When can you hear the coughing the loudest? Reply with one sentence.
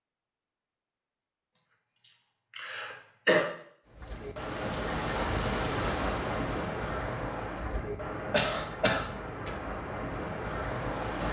The loudest moment of the coughing is at 3 seconds.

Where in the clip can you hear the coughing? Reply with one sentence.
You can hear the coughing from 1.6 to 3.5 s and from 8.3 to 9.6 s.